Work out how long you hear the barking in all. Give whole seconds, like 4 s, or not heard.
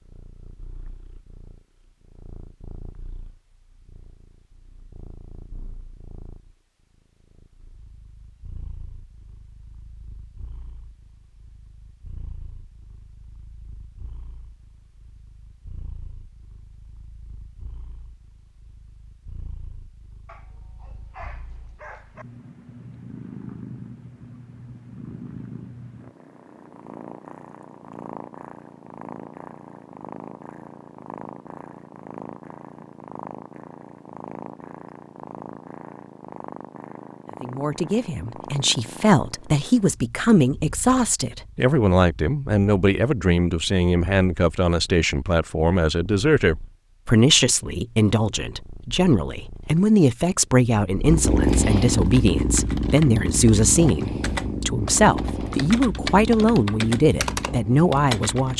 2 s.